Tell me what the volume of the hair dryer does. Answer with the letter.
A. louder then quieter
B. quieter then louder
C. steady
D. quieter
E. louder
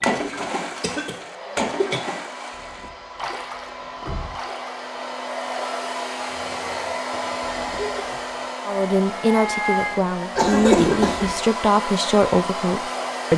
E.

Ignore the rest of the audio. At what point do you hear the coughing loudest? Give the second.
11 s.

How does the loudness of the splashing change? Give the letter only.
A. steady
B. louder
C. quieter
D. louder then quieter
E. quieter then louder
C.